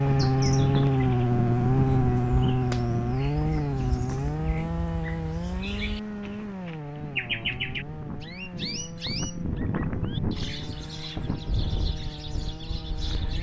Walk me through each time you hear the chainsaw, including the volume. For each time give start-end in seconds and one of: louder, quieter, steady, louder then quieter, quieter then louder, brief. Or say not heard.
0.0-13.3 quieter.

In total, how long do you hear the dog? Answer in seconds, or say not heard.
not heard.